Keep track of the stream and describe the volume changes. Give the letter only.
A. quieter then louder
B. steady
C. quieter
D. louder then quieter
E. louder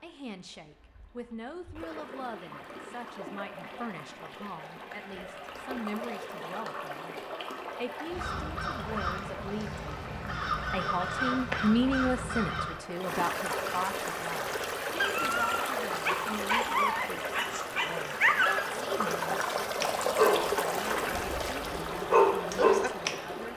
E.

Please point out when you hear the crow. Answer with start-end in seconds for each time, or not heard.
8.1-12.8.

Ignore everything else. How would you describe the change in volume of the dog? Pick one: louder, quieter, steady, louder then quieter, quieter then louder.
louder.